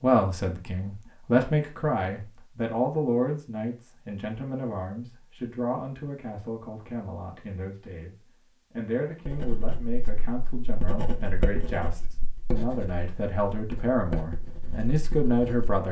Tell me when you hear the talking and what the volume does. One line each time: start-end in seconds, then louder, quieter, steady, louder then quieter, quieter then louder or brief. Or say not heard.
0.0-15.8 quieter then louder.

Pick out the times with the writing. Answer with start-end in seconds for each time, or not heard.
9.2-15.8.